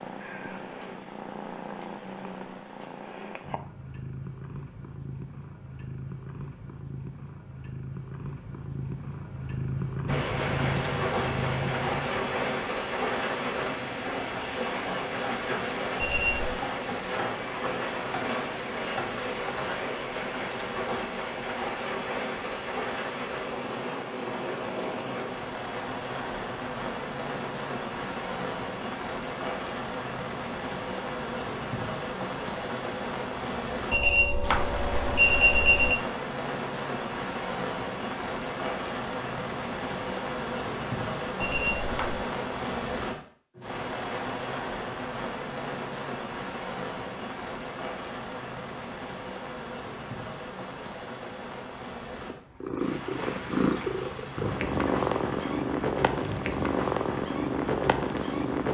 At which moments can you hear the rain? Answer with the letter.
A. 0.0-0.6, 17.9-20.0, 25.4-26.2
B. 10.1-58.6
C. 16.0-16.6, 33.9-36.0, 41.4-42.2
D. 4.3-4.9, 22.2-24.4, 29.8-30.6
B.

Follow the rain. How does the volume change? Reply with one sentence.
The volume of the rain goes down.